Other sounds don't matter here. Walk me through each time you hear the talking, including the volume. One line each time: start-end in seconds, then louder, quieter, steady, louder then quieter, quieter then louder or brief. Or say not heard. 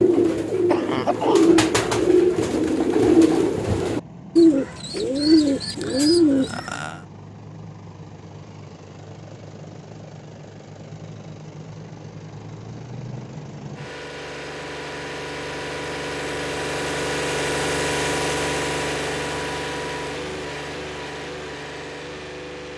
not heard.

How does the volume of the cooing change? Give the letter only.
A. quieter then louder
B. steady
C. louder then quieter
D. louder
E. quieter
B.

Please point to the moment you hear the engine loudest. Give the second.
18 s.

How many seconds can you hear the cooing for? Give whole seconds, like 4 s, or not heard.
7 s.